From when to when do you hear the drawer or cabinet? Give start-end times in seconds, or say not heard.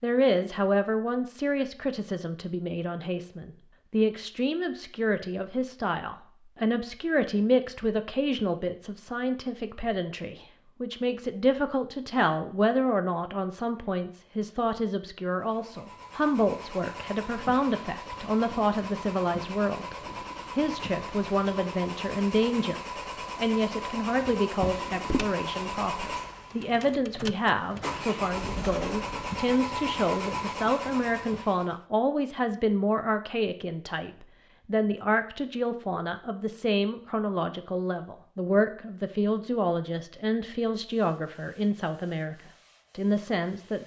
24.6-25.3.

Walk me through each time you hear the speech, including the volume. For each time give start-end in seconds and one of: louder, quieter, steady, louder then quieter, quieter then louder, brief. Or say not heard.
0.0-42.4 steady
43.0-43.8 brief.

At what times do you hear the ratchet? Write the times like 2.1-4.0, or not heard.
not heard.